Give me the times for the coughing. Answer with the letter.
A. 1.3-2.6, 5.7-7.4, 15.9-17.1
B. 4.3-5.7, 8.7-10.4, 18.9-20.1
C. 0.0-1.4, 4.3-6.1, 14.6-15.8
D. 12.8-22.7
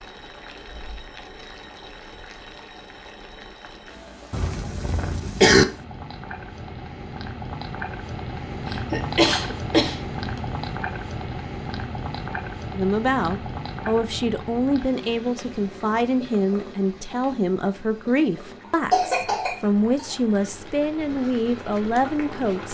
B.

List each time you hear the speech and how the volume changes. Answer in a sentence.
You can hear the speech from 12.8 to 22.7 s, at a steady volume.